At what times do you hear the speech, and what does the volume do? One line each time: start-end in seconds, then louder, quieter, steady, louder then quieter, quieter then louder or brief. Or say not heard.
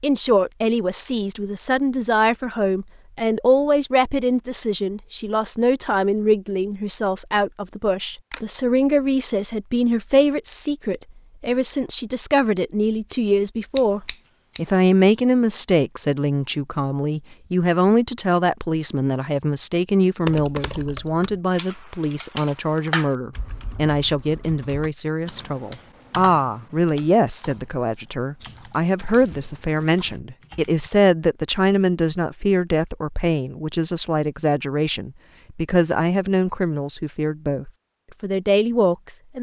0.0-39.3 steady.